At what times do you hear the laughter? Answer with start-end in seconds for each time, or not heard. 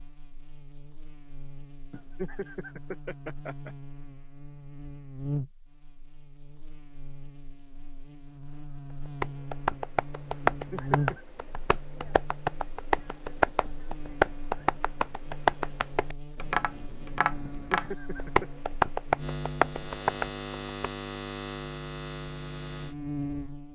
1.9-3.8, 10.5-11.2, 17.5-18.5.